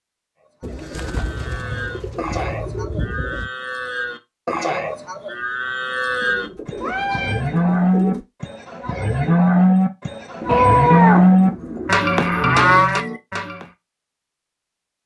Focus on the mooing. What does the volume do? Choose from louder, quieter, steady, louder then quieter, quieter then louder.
louder.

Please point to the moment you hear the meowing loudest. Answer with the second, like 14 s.
11 s.